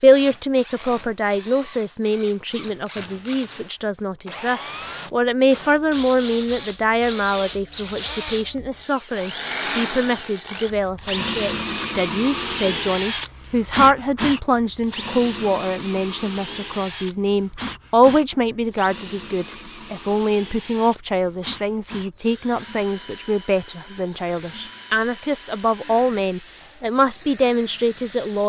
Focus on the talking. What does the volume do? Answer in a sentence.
The loudness of the talking stays about the same.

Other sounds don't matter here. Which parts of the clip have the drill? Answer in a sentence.
You can hear the drill from 0.0 to 28.4 s.